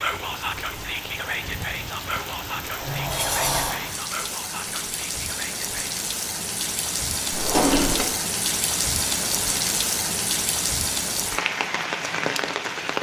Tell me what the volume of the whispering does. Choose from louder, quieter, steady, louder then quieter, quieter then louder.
quieter.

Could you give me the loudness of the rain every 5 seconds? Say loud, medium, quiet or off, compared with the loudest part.
medium, loud, loud.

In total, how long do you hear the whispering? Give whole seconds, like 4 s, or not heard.
6 s.